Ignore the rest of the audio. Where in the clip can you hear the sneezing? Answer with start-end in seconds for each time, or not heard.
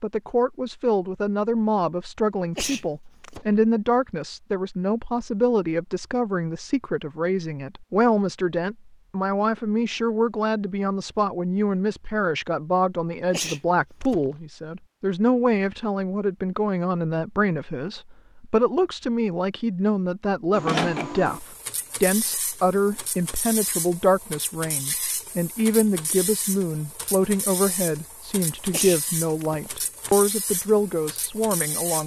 2.5-3.5, 13.3-14.3, 28.7-30.1.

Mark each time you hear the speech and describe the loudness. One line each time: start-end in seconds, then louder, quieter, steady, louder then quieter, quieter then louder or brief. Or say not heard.
0.0-32.0 steady.